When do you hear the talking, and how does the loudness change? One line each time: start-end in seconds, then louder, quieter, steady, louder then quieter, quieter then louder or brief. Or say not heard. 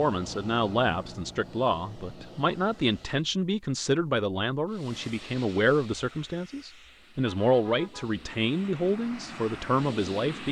0.0-10.4 steady.